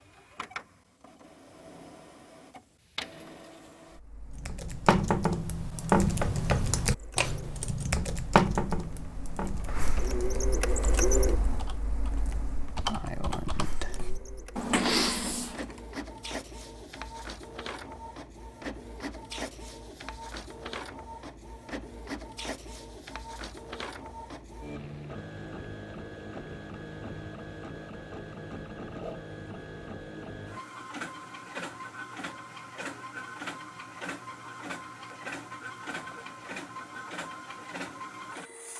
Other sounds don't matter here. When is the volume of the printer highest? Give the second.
11 s.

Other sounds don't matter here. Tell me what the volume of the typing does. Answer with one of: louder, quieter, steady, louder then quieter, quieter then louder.
quieter then louder.